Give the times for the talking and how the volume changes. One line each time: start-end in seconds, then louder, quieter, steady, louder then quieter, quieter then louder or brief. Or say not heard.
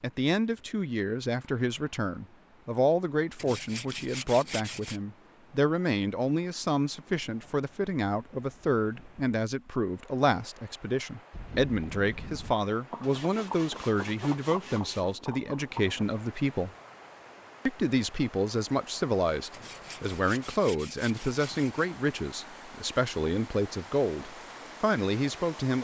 0.0-16.7 steady
17.6-25.7 steady.